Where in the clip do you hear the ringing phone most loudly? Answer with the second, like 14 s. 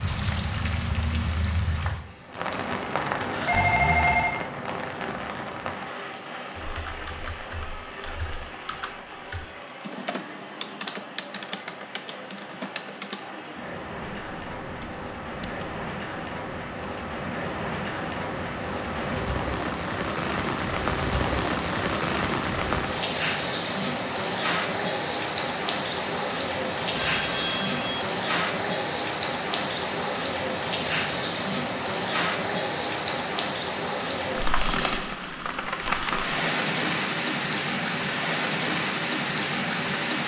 4 s.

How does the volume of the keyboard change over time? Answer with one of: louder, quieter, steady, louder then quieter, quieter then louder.
louder then quieter.